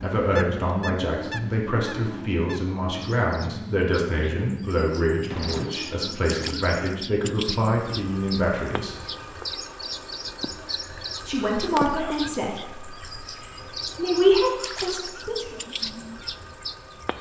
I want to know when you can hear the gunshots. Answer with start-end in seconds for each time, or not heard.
5.2-5.9.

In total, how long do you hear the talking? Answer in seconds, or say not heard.
13 s.